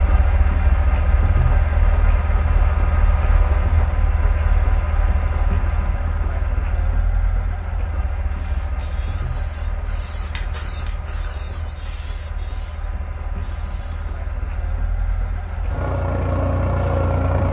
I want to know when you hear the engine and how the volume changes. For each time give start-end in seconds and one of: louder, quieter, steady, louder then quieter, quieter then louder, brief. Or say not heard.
0.0-17.4 quieter then louder.